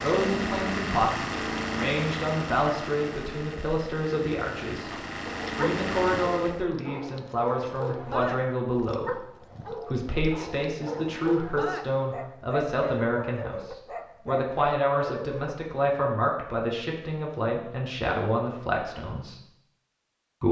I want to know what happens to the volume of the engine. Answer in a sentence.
The volume of the engine goes down, then up.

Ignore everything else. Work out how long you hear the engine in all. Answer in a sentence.
You can hear the engine for 7 seconds altogether.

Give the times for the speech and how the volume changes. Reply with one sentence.
You can hear the speech from 0.0 to 19.4 s, at a steady volume.